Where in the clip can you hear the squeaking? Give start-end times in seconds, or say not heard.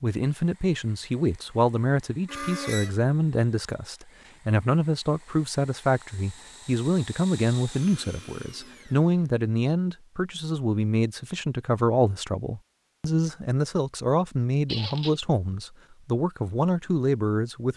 2.2-3.0, 14.7-15.2.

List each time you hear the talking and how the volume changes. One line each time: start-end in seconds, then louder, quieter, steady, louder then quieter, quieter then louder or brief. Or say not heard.
0.0-17.7 steady.